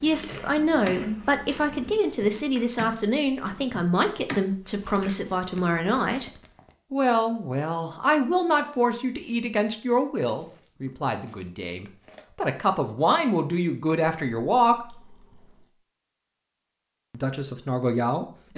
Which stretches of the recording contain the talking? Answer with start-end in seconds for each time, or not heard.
0.0-6.3, 6.9-14.8, 17.1-18.5.